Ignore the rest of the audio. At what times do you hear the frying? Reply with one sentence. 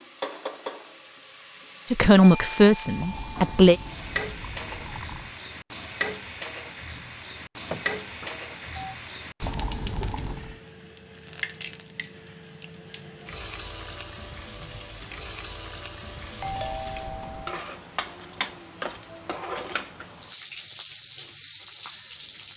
The frying can be heard from 0.0 to 22.5 s.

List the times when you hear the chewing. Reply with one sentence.
You can't hear the chewing here.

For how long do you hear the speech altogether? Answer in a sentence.
The speech can be heard for 2 seconds in total.